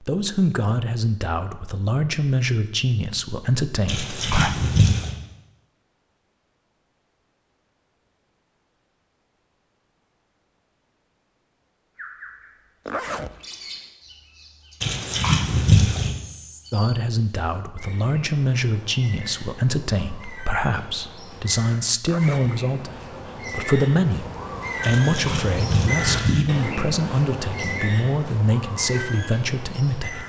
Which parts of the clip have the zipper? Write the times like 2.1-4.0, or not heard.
12.8-13.3, 22.0-22.6.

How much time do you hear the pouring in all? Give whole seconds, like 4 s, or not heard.
4 s.